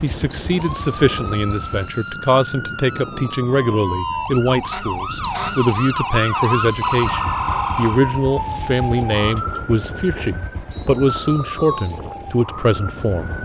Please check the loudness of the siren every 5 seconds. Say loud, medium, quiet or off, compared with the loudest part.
medium, loud, medium.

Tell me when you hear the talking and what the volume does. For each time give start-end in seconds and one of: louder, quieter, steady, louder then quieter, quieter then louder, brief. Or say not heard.
0.0-13.3 steady.